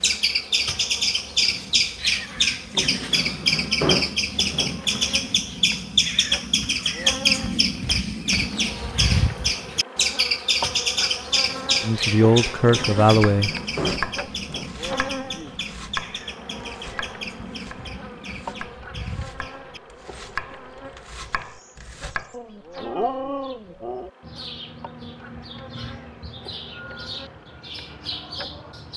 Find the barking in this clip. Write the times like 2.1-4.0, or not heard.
22.3-24.1.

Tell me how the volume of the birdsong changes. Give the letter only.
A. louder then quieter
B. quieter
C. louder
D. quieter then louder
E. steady
B.